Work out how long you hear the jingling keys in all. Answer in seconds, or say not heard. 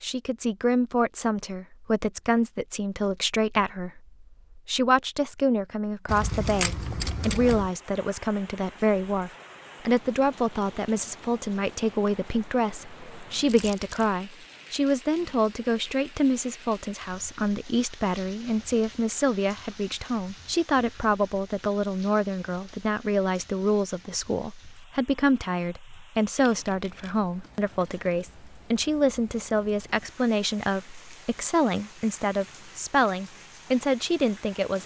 4 s.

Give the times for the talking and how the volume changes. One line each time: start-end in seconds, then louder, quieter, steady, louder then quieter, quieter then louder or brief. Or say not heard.
0.0-34.8 steady.